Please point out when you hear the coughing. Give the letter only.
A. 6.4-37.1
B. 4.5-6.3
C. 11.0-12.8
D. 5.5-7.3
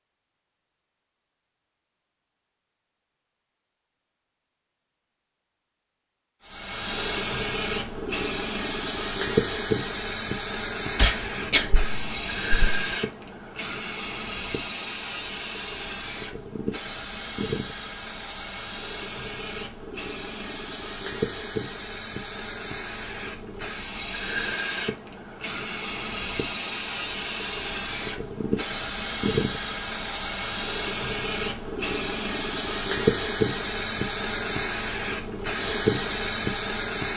C.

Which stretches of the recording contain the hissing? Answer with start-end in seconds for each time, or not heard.
6.4-37.1.